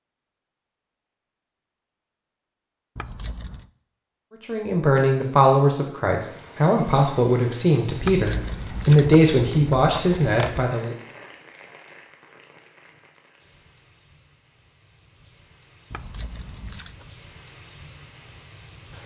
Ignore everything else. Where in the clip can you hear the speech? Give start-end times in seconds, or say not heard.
4.5-10.9.